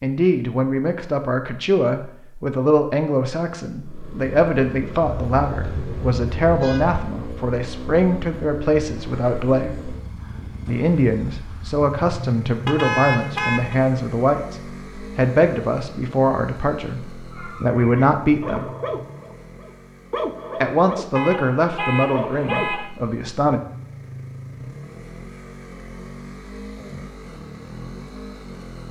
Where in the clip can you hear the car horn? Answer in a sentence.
The car horn can be heard from 5.0 to 7.0 s, from 12.7 to 13.8 s and from 21.1 to 22.9 s.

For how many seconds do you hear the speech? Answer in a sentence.
The speech can be heard for 21 seconds in total.